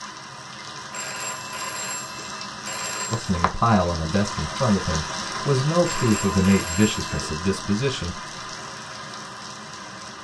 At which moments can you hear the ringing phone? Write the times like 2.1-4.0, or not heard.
0.9-3.3, 5.8-7.2.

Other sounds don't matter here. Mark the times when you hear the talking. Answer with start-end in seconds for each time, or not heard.
3.1-8.2.